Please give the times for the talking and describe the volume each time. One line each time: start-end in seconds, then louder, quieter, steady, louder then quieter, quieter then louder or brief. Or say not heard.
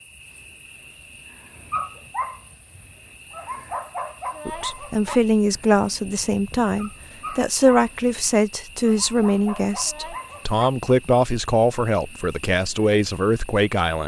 4.5-14.0 steady.